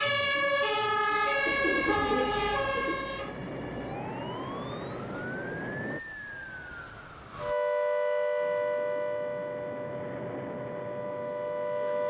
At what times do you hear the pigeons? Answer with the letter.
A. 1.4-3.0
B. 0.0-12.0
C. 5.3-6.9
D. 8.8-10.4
A.